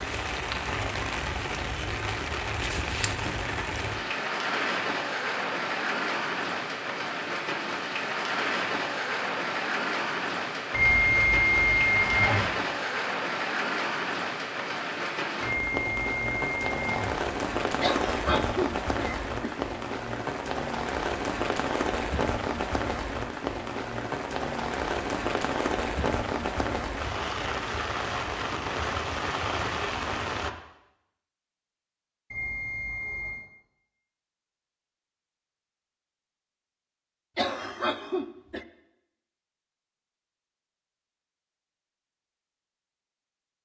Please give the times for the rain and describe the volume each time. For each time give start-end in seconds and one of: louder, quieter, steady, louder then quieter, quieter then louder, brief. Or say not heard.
0.0-30.5 steady.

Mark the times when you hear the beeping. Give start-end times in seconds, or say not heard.
10.7-12.4, 15.4-17.1, 32.3-33.5.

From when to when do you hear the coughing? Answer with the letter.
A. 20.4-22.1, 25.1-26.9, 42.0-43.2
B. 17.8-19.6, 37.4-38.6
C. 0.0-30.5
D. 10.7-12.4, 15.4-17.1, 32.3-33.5
B.